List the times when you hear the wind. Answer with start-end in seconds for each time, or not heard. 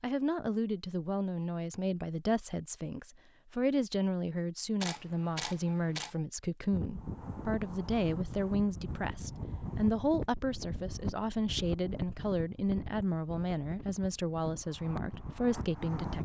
6.7-16.2.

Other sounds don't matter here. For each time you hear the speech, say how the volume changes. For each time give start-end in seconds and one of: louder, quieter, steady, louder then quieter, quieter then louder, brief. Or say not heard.
0.0-16.2 steady.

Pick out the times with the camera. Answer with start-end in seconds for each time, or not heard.
4.8-6.2.